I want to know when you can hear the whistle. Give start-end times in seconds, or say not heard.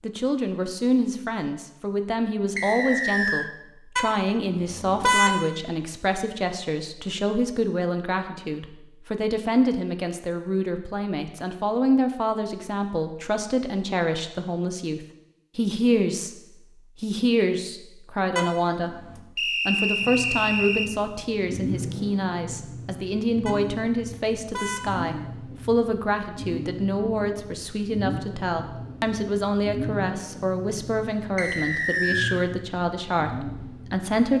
2.5-3.5, 19.4-20.9, 31.4-32.4.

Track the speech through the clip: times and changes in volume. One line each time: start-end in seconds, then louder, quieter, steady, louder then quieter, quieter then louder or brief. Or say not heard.
0.0-16.4 steady
17.0-18.9 brief
19.6-34.3 steady.